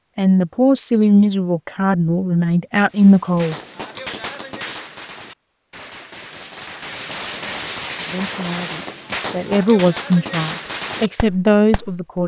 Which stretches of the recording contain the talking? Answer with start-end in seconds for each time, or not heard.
0.1-3.5, 8.1-12.2.